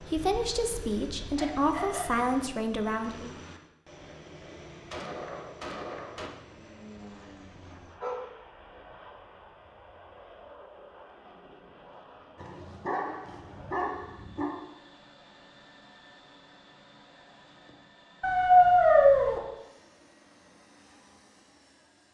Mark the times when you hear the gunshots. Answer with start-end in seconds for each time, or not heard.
4.4-6.3.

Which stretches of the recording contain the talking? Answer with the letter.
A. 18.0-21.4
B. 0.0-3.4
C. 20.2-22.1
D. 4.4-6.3
B.